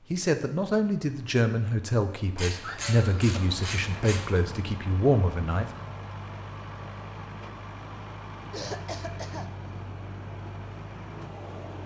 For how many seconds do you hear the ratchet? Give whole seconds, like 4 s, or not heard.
2 s.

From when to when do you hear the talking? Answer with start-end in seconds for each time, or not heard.
0.1-5.7.